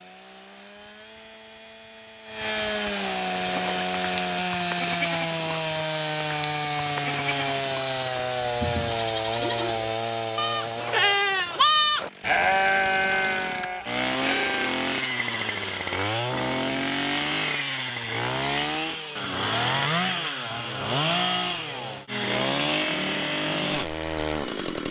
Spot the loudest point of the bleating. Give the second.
12 s.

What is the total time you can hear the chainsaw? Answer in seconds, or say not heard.
25 s.